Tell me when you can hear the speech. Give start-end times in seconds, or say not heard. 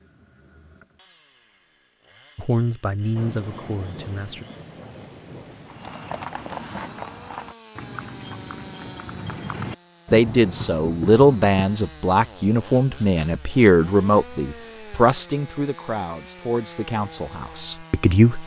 2.4-4.5, 10.1-18.4.